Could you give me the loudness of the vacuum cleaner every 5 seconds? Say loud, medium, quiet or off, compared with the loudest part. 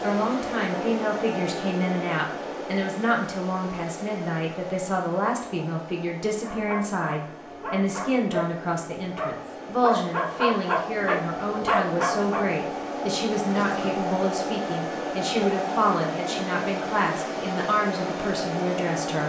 loud, medium, loud, loud.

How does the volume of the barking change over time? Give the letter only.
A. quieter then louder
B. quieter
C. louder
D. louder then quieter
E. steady
C.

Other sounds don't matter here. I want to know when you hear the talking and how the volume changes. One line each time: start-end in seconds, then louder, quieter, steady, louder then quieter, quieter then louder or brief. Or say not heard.
0.0-19.2 steady.